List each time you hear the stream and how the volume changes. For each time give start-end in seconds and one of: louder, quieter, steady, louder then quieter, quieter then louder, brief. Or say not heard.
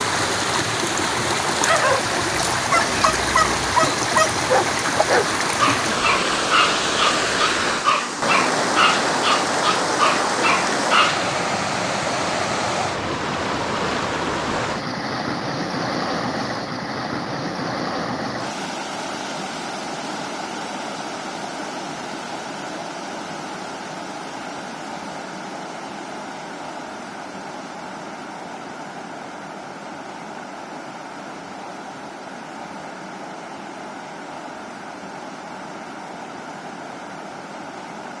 0.0-38.1 quieter.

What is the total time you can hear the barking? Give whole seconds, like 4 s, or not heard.
10 s.